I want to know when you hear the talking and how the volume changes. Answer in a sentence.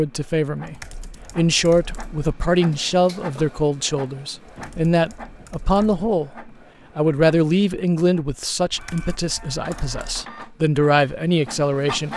You can hear the talking from 0.0 to 12.1 s, at a steady volume.